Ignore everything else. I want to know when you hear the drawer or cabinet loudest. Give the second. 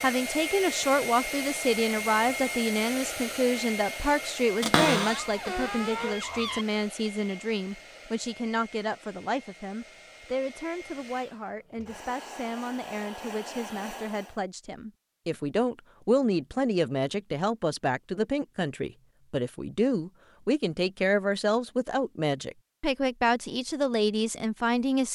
5 s.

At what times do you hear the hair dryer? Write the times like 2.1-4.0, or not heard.
0.0-14.4.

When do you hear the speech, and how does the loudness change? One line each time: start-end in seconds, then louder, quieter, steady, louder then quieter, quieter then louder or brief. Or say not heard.
0.0-25.1 quieter then louder.